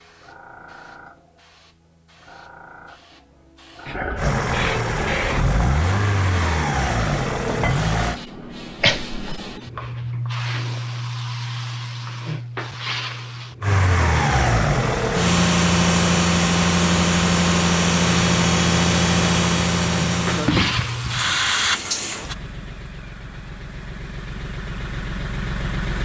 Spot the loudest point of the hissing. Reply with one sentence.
The loudest moment of the hissing is at 21 seconds.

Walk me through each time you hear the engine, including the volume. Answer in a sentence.
You can hear the engine from 4.2 to 8.2 s, at a steady volume; and from 13.6 to 25.9 s, getting quieter.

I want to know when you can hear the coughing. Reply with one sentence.
The coughing can be heard from 8.8 to 9.5 s.